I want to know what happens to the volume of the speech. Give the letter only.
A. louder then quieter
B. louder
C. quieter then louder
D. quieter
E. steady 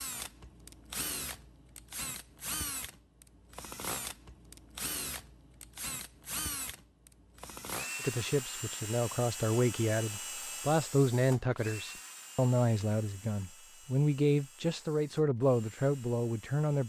E.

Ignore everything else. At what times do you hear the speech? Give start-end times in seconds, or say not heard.
8.0-16.8.